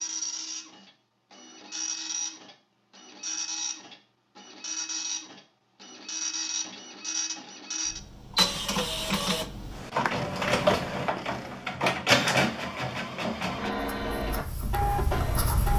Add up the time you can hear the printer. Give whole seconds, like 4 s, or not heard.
16 s.